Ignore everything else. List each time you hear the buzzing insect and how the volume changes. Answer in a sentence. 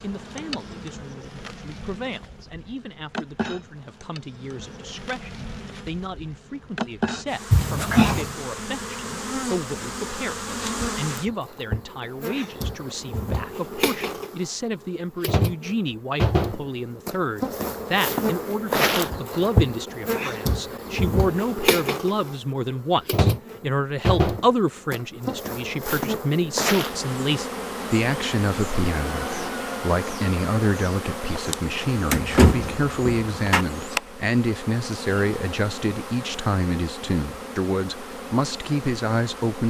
The buzzing insect can be heard from 0.0 to 39.6 s, getting louder then quieter.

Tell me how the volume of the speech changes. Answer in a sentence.
The volume of the speech goes up.